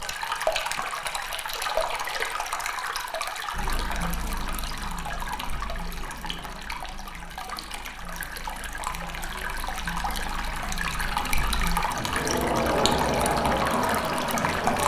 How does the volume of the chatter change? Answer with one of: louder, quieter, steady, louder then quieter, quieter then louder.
quieter then louder.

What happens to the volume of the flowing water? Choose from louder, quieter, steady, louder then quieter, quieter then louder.
quieter then louder.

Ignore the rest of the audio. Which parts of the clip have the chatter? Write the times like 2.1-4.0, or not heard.
3.5-14.8.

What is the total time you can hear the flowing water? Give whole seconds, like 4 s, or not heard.
15 s.